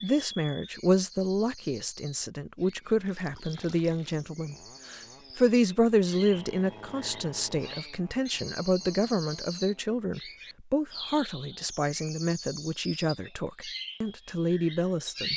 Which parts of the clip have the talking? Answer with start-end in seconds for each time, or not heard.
0.0-15.3.